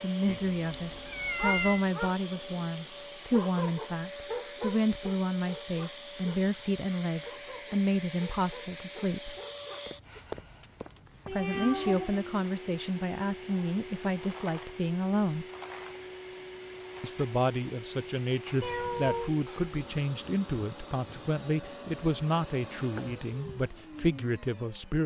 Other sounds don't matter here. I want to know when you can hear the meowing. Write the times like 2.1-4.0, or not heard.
0.2-1.9, 11.2-12.2, 18.6-19.3.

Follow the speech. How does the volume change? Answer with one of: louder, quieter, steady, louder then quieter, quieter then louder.
steady.